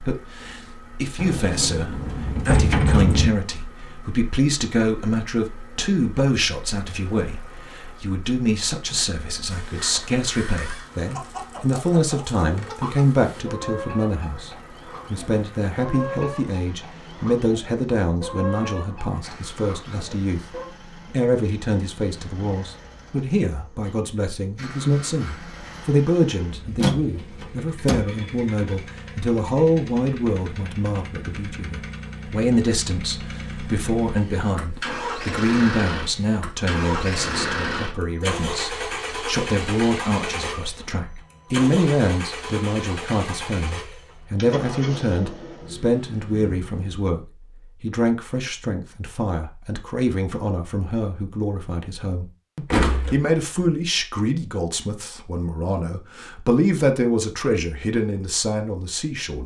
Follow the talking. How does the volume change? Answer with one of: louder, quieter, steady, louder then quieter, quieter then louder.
steady.